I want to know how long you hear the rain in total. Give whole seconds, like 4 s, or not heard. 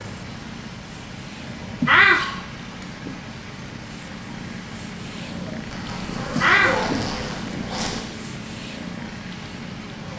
10 s.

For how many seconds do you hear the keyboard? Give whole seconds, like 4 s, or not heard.
not heard.